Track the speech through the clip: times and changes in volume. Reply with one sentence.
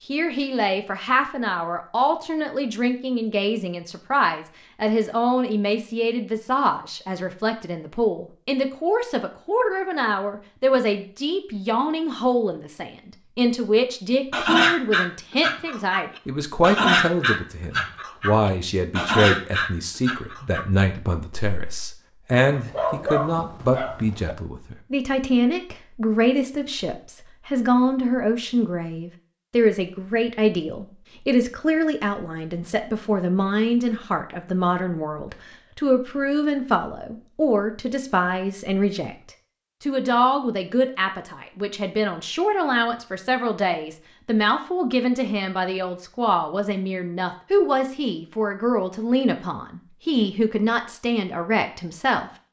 The speech can be heard from 0.1 to 39.1 s, at a steady volume; and from 39.8 to 52.3 s, at a steady volume.